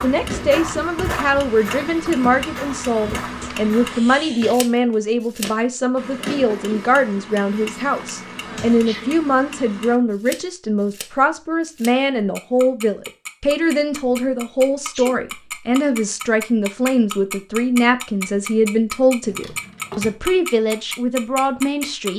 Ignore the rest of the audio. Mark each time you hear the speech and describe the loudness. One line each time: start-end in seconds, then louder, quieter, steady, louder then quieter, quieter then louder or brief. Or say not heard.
0.0-22.1 steady.